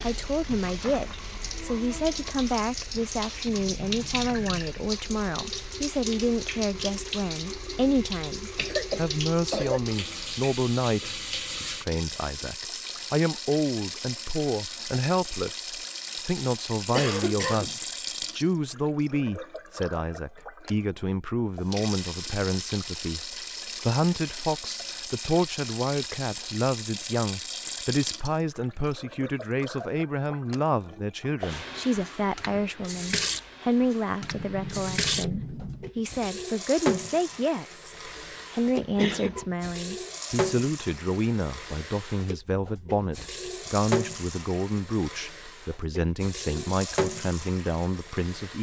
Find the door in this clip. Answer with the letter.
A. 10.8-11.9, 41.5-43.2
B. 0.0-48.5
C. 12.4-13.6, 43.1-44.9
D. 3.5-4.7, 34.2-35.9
D.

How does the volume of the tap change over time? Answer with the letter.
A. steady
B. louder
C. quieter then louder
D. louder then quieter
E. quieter
A.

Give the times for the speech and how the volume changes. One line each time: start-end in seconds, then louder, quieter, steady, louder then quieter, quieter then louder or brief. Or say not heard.
0.0-48.5 steady.